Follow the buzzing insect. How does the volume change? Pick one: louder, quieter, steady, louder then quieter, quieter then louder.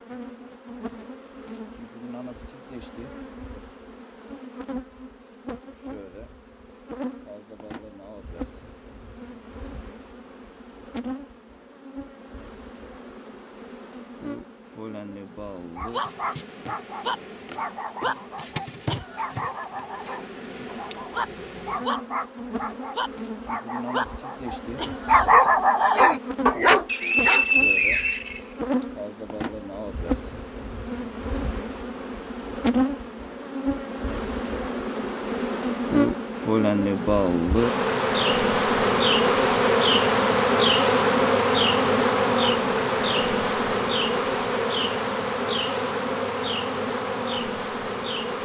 louder.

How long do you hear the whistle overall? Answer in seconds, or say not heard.
2 s.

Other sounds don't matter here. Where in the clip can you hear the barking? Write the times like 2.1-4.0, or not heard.
15.8-27.4.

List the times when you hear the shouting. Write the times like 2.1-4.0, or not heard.
not heard.